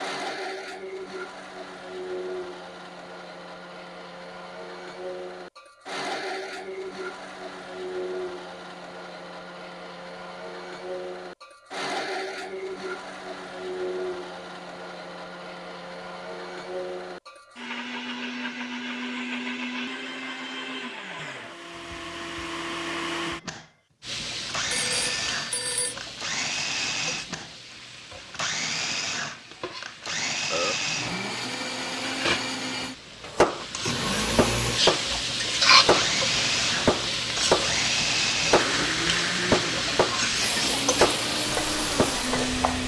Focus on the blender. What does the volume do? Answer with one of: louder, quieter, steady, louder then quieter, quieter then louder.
louder.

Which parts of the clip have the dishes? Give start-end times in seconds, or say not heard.
not heard.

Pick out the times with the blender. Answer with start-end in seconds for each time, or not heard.
0.0-42.8.